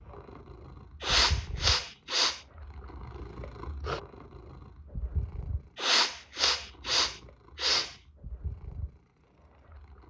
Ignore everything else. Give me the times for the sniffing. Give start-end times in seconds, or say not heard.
1.0-2.4, 5.8-8.0.